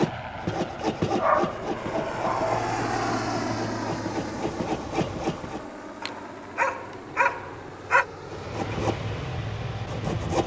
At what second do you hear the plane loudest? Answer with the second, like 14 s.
3 s.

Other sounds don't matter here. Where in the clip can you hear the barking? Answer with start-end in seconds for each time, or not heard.
1.1-2.7, 6.0-8.1.